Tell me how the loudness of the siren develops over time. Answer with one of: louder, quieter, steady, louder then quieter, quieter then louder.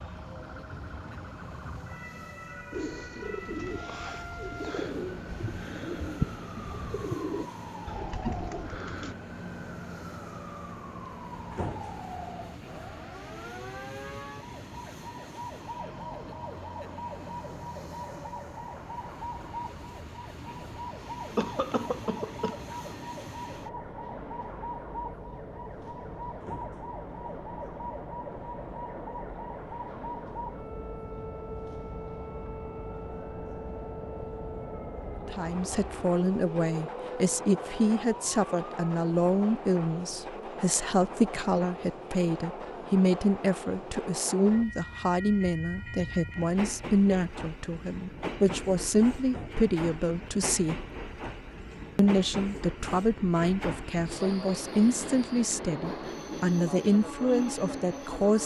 steady.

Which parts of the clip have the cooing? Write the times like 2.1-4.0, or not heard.
2.7-9.2.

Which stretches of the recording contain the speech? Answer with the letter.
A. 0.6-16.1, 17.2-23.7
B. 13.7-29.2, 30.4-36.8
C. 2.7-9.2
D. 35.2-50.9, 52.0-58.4
D.